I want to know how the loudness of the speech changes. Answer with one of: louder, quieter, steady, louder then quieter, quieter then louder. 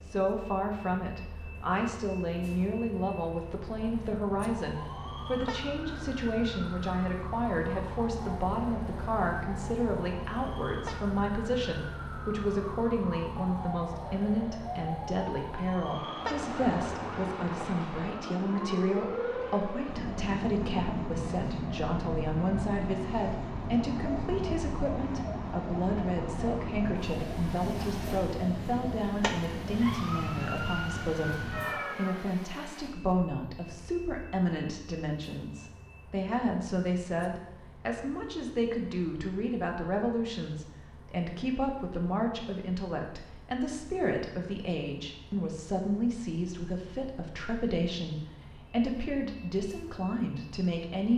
steady.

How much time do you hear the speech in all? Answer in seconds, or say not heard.
51 s.